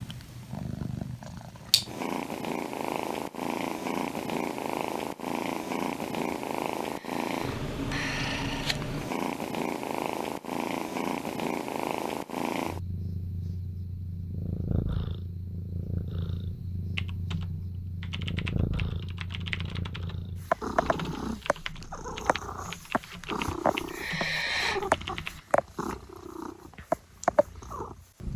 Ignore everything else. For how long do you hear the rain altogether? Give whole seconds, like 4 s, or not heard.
not heard.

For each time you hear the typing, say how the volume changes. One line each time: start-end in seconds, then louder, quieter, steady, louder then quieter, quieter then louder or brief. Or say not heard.
16.9-25.4 steady.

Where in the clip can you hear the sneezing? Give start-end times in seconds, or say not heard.
not heard.